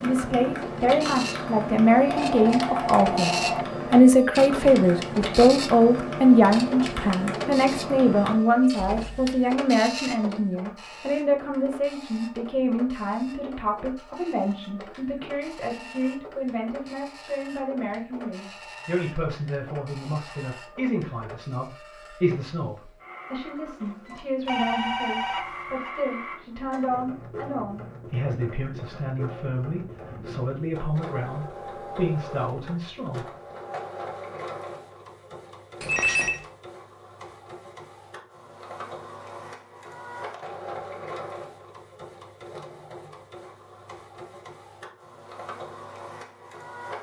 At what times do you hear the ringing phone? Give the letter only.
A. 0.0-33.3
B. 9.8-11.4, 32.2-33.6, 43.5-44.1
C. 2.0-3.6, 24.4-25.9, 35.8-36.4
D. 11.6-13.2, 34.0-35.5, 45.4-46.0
C.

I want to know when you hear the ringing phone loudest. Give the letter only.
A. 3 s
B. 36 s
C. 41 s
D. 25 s
B.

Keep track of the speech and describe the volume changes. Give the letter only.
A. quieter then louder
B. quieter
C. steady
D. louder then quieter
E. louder
B.